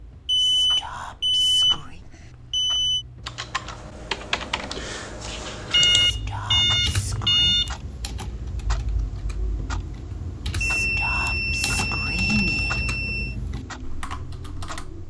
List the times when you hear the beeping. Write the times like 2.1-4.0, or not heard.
0.2-3.0, 5.7-7.7, 10.6-13.3.